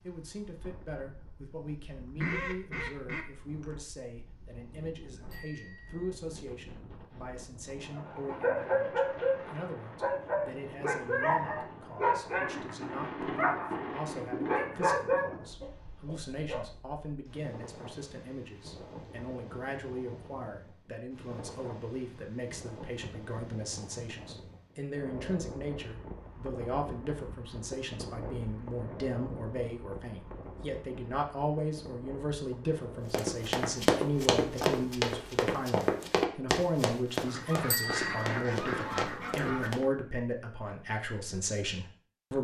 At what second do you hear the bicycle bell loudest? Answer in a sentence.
The loudest moment of the bicycle bell is at 38 seconds.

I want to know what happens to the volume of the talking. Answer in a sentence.
The loudness of the talking goes up.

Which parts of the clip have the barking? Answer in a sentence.
The barking can be heard from 7.9 to 16.6 s.